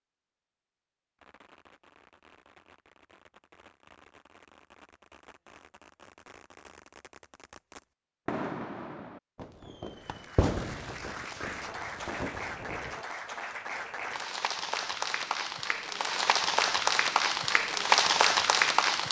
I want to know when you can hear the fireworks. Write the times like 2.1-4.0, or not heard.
1.1-13.1.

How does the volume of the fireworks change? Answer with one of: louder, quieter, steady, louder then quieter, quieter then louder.
louder.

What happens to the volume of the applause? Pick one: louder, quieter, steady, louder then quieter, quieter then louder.
louder.